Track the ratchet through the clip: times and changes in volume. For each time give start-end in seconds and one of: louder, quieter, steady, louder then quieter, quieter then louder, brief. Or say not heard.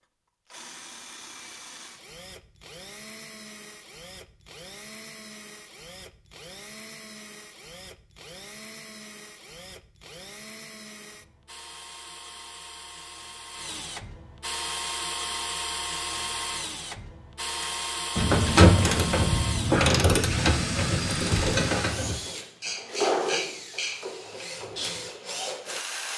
17.6-25.0 quieter.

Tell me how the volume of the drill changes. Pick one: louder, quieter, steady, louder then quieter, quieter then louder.
louder.